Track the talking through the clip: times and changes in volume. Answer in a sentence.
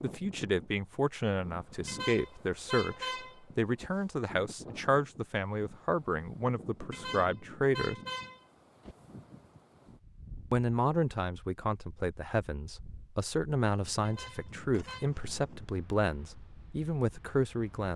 You can hear the talking from 0.0 to 8.0 s, at a steady volume; and from 10.5 to 17.9 s, at a steady volume.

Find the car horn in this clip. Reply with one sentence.
The car horn can be heard from 1.9 to 3.9 s, from 6.9 to 8.9 s and from 14.1 to 15.1 s.